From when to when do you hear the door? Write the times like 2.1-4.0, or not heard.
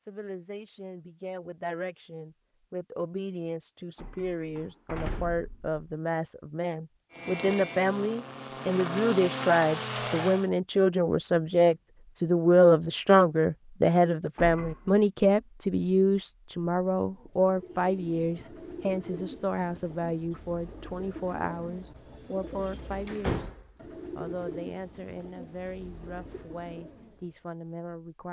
4.0-5.8, 14.3-15.0, 23.1-23.6.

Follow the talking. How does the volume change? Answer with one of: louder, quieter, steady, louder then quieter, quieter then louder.
louder then quieter.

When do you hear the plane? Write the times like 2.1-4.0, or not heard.
7.1-10.5.